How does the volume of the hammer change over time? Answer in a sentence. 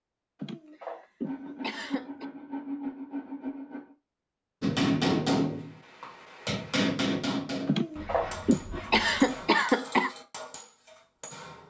The volume of the hammer goes down.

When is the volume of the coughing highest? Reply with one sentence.
The volume of the coughing peaks at 9 seconds.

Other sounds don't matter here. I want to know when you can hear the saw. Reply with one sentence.
You can hear the saw from 1.2 to 4.0 s and from 8.0 to 9.6 s.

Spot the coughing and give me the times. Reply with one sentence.
You can hear the coughing from 0.4 to 2.2 s and from 7.7 to 10.1 s.